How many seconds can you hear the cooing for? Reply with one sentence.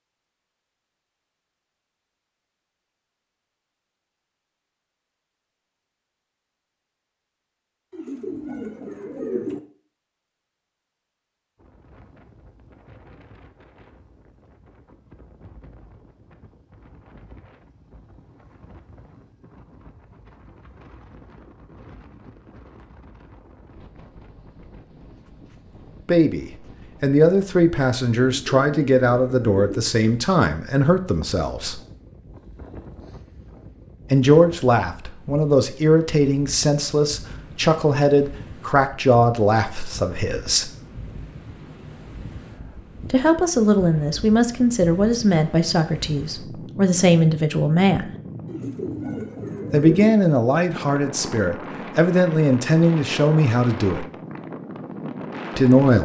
You can hear the cooing for 5 seconds altogether.